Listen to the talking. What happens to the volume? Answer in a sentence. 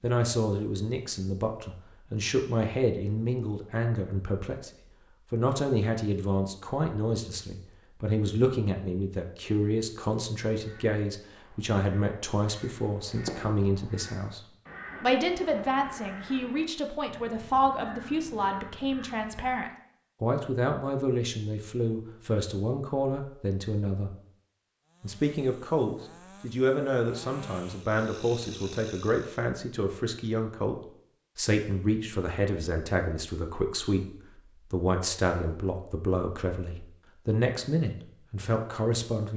The volume of the talking stays about the same.